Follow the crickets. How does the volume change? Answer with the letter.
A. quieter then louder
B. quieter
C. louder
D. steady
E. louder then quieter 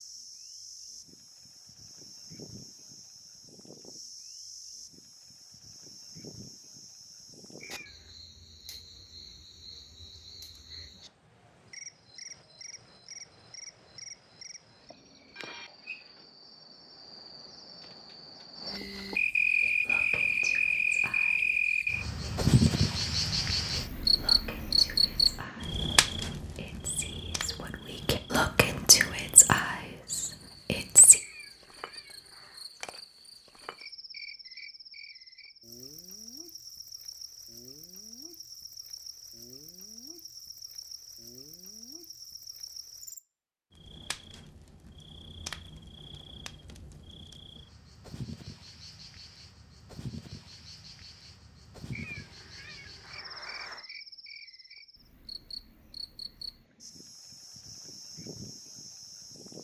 E.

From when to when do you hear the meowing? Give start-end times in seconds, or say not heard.
7.6-8.2, 31.2-32.7, 51.9-53.9.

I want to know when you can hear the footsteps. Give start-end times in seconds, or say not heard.
not heard.